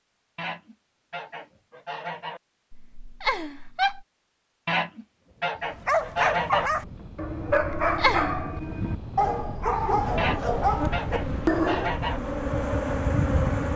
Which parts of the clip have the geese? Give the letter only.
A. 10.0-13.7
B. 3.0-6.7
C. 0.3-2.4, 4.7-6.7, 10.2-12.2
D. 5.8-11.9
C.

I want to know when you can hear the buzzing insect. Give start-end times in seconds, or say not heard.
10.0-13.7.